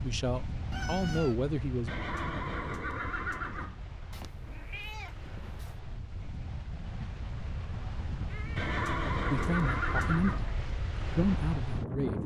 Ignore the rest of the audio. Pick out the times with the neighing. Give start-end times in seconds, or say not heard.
1.9-3.8, 8.6-10.5.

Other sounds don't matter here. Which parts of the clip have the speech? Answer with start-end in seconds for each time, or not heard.
0.0-1.9, 9.3-12.2.